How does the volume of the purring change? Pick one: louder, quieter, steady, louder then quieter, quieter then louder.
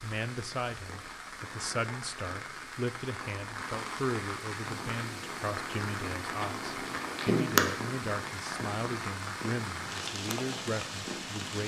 louder then quieter.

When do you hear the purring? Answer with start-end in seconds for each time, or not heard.
4.9-11.6.